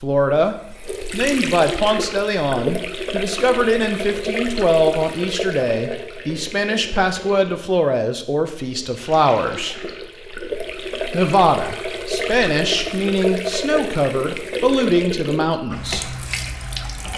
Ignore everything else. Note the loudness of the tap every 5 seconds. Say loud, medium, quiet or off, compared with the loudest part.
loud, medium, loud, loud.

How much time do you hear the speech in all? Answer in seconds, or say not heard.
15 s.